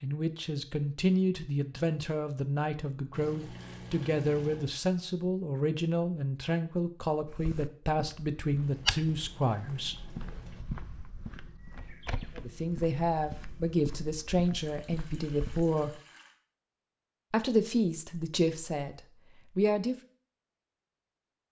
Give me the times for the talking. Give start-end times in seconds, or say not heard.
0.0-10.0, 12.3-16.0, 17.3-19.9.